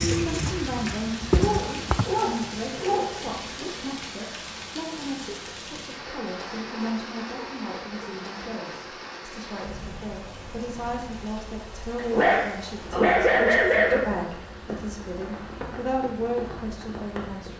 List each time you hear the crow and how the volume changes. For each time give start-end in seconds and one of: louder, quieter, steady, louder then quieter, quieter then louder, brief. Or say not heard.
not heard.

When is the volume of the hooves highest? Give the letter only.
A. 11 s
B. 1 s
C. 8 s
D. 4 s
B.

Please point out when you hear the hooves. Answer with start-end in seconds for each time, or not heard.
0.0-2.0.